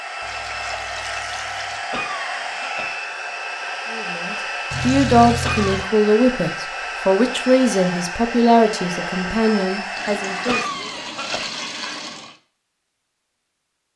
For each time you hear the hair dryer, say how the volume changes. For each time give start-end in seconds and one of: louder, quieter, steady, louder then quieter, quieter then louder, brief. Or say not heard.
0.0-10.7 steady.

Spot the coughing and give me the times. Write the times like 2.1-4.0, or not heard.
1.9-3.0, 5.4-5.8, 10.4-11.5.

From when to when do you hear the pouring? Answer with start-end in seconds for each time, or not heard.
0.2-1.8, 4.7-5.8, 9.9-12.3.